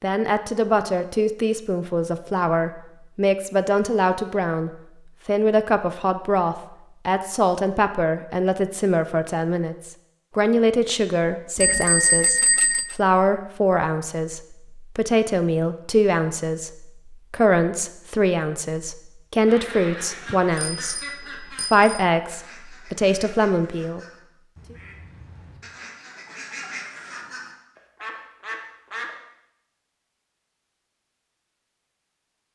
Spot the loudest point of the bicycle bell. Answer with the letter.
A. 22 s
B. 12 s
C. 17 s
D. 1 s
B.